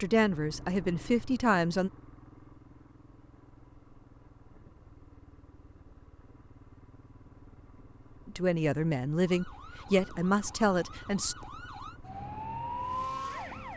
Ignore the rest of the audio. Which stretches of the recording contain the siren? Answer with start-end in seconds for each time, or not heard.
9.2-13.7.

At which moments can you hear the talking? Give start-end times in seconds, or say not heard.
0.0-1.9, 8.2-11.3.